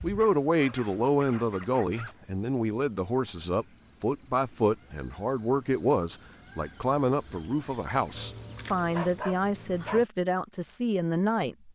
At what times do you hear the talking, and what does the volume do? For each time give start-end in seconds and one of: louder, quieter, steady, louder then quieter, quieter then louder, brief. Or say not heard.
0.0-11.6 steady.